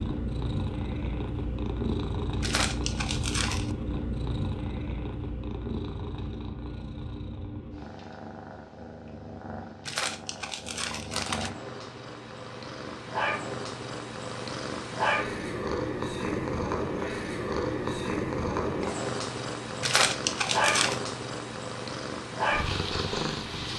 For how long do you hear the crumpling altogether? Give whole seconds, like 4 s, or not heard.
4 s.